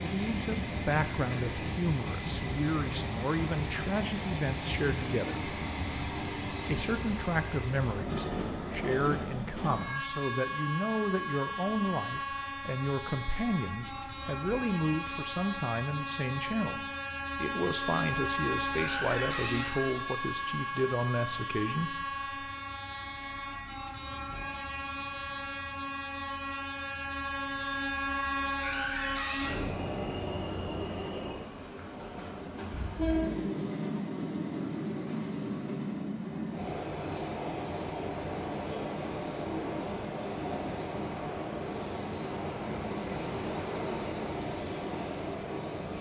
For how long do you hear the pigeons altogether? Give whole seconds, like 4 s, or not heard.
not heard.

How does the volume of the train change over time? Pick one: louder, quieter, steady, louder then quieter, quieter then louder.
steady.